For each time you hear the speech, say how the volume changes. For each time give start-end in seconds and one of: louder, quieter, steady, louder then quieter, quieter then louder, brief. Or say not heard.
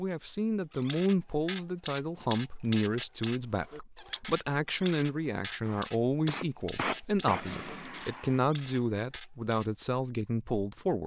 0.0-11.0 steady.